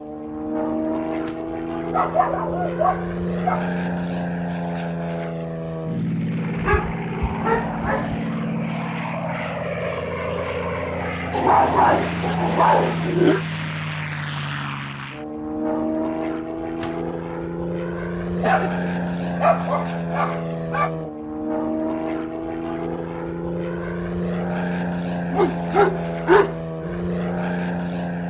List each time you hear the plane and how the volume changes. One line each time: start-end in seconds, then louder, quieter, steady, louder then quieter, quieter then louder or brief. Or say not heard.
0.0-28.2 steady.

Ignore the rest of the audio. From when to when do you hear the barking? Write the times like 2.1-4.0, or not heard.
1.9-3.6, 6.5-8.2, 11.3-13.4, 18.4-20.9, 25.3-26.6.